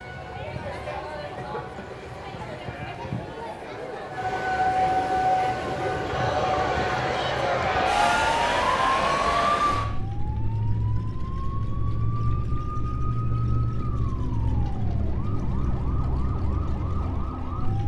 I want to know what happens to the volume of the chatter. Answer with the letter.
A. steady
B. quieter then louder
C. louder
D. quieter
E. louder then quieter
C.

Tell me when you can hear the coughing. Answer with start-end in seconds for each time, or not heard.
1.4-2.0.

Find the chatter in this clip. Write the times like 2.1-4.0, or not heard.
0.0-9.9.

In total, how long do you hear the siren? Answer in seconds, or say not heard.
18 s.